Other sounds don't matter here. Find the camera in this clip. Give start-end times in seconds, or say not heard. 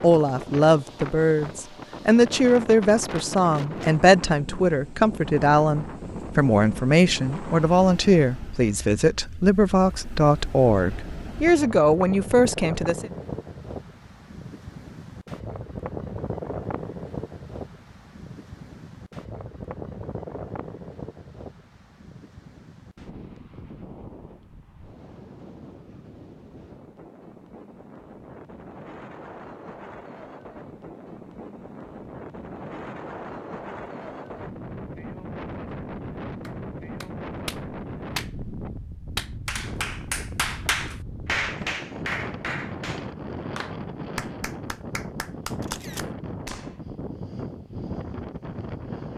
45.6-46.1.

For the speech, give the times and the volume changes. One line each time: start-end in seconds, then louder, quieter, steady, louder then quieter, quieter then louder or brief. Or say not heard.
0.0-13.1 steady.